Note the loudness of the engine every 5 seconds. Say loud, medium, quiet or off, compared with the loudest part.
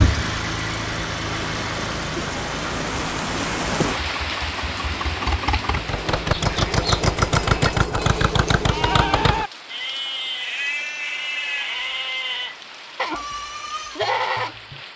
medium, loud, off.